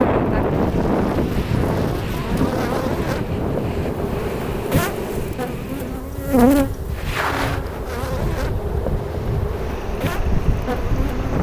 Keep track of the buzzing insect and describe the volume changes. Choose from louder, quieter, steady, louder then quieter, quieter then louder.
louder then quieter.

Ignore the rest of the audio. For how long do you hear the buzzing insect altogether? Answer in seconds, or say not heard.
11 s.